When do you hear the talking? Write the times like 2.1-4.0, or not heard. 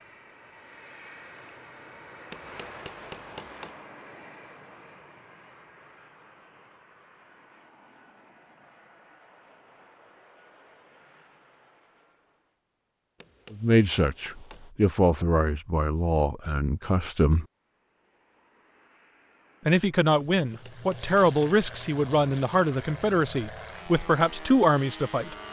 13.5-17.4, 19.6-25.4.